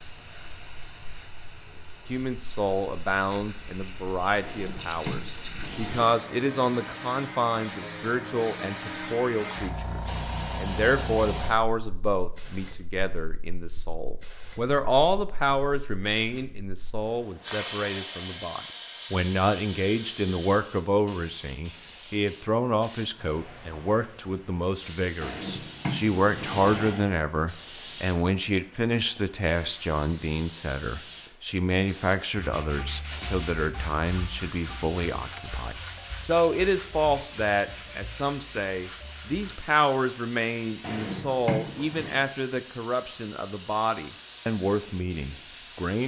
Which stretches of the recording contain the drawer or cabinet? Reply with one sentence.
You can hear the drawer or cabinet from 4.4 to 6.1 s, from 25.2 to 27.1 s and from 40.8 to 42.2 s.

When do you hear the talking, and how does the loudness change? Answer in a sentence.
You can hear the talking from 2.0 to 46.0 s, at a steady volume.